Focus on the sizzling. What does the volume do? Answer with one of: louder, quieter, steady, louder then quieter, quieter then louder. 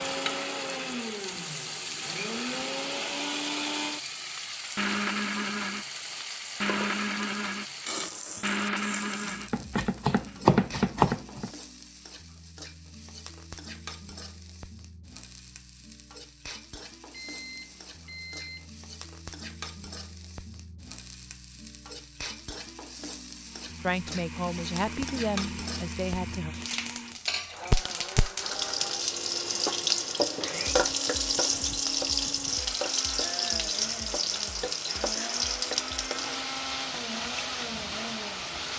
quieter then louder.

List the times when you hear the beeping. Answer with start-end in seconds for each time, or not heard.
17.1-18.7.